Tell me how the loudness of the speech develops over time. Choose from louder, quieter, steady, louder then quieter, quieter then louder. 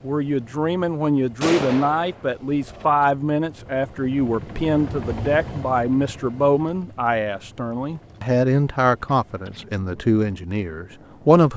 steady.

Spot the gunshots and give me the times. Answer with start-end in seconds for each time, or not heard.
1.4-2.9.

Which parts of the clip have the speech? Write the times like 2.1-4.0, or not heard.
0.0-11.5.